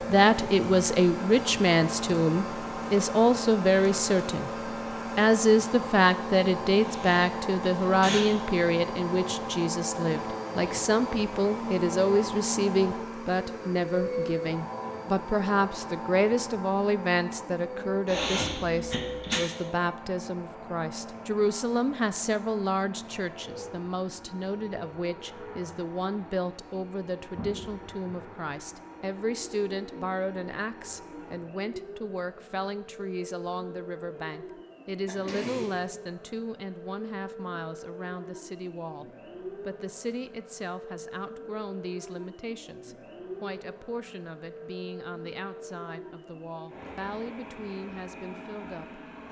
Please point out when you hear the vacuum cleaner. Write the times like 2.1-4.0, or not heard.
0.0-49.2.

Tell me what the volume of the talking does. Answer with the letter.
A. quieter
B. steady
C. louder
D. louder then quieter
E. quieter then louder
A.